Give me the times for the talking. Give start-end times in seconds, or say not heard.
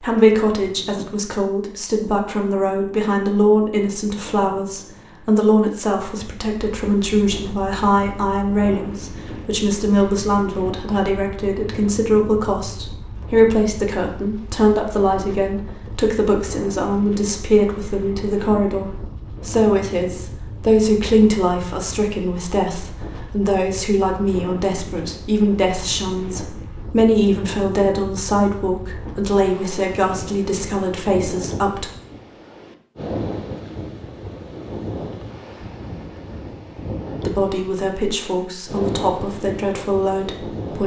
0.0-31.9, 37.1-40.8.